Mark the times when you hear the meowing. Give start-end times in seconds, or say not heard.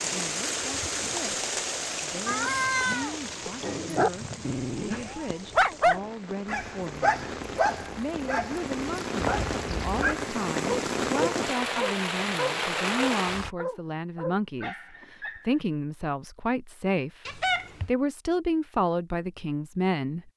2.2-3.7, 9.2-10.2, 17.2-17.9.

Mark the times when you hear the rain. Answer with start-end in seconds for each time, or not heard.
0.0-13.6.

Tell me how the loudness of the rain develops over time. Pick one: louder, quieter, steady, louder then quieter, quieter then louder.
quieter then louder.